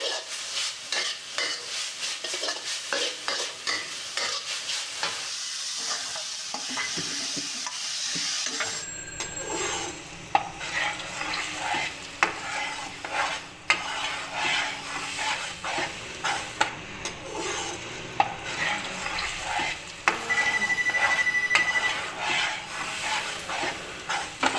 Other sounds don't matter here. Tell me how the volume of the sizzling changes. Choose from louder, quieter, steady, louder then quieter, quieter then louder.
steady.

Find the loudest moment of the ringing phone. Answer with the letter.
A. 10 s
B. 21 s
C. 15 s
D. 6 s
B.